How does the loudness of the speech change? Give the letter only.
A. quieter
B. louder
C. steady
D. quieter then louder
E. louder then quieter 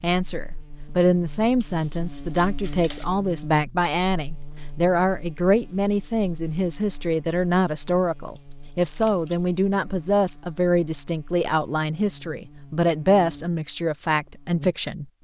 C.